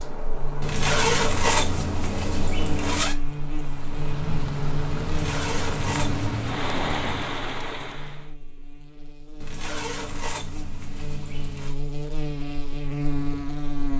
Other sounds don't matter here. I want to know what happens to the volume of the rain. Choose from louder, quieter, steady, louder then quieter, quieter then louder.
louder.